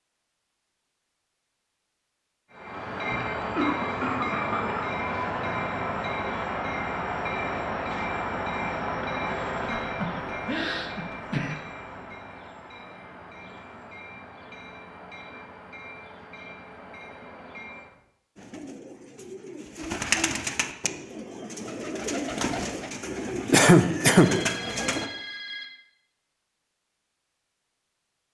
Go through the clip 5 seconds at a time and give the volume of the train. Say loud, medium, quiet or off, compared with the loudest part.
loud, loud, medium, quiet, off, off.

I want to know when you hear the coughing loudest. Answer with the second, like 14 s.
24 s.